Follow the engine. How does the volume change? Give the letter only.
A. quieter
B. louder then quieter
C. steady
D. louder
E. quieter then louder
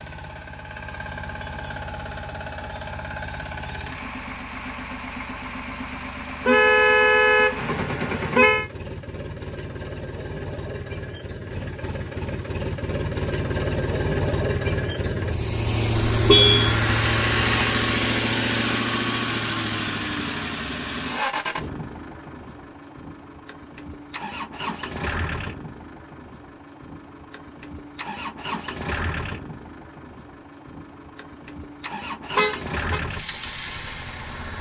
B.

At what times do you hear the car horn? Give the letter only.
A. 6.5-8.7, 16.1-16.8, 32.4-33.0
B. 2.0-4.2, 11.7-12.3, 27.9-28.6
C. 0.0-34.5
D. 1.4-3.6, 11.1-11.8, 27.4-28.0
A.